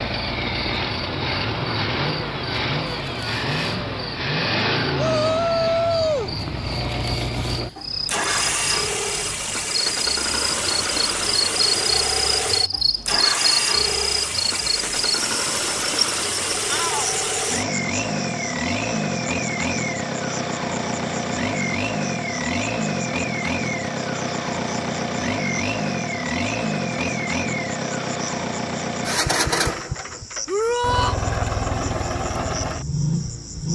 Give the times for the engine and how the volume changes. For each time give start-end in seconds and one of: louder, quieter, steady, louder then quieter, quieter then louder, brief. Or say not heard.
0.0-33.6 steady.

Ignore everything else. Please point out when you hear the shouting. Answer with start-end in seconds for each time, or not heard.
5.0-6.3, 16.6-17.1, 30.4-31.1.